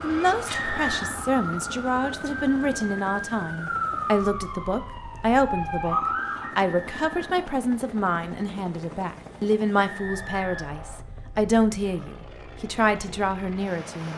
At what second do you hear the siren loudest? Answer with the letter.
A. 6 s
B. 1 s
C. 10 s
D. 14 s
A.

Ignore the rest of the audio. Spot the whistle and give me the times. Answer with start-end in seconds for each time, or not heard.
0.5-1.2, 6.4-7.5, 9.8-11.0.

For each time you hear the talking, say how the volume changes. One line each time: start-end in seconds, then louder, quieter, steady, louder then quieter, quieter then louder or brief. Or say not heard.
0.0-14.1 steady.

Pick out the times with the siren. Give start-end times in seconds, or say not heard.
0.0-6.5.